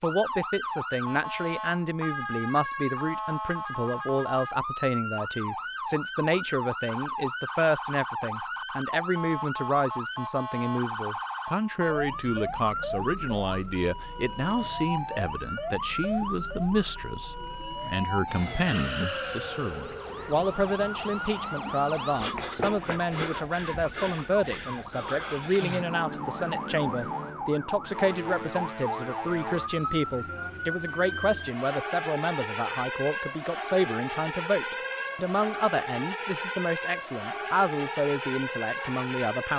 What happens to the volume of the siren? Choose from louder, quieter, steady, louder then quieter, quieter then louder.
steady.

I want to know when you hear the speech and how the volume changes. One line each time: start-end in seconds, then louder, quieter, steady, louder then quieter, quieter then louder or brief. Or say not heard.
0.0-39.5 steady.